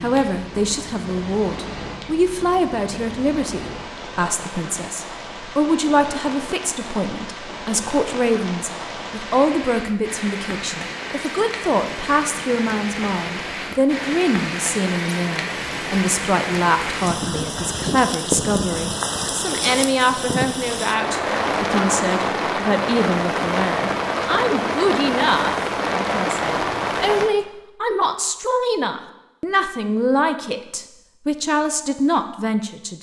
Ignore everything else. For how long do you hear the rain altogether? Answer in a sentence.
You can hear the rain for 27 seconds altogether.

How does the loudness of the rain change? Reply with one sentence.
The volume of the rain goes up.